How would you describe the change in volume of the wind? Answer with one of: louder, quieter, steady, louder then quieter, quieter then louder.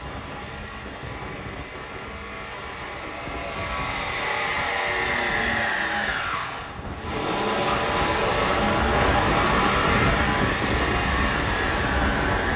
louder.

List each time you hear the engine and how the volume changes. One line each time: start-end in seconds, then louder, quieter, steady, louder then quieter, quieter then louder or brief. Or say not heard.
0.0-12.5 louder.